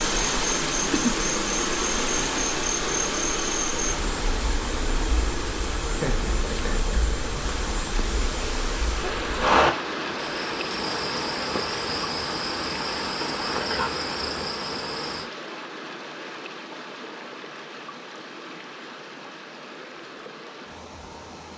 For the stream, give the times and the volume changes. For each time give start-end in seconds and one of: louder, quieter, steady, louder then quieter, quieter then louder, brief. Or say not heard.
0.0-21.5 quieter.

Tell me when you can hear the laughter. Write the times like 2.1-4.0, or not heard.
5.9-7.6.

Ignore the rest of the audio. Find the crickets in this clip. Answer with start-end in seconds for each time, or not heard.
0.0-15.3.